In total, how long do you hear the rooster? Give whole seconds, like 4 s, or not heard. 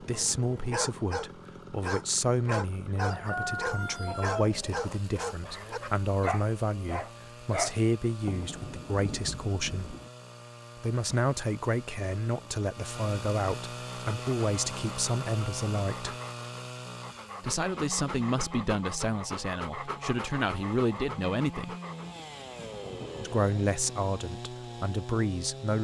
3 s.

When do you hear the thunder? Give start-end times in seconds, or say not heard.
8.2-10.1, 22.0-23.9.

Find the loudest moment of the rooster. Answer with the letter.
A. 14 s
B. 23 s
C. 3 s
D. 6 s
C.